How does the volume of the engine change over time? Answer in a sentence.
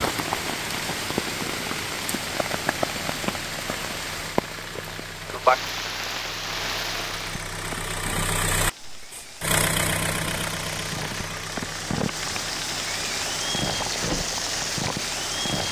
The volume of the engine goes up, then down.